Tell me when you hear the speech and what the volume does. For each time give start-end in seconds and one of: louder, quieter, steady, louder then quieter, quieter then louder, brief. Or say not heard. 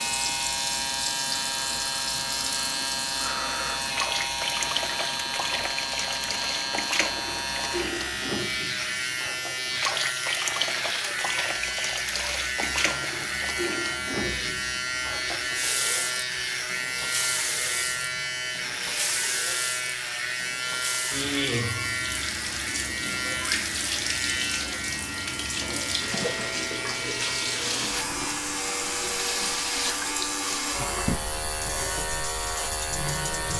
not heard.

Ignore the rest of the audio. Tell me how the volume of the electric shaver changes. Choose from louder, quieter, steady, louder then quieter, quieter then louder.
steady.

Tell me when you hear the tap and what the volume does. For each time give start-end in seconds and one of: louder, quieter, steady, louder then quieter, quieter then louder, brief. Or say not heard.
0.0-33.5 steady.